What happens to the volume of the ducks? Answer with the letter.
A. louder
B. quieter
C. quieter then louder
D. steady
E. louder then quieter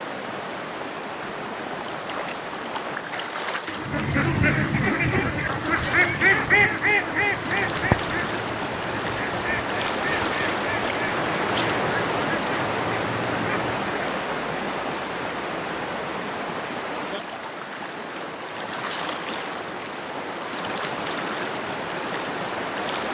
B.